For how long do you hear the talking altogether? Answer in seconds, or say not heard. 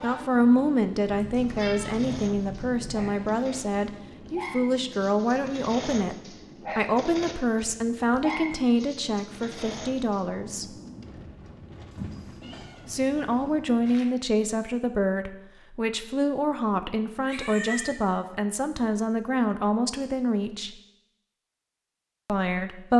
19 s.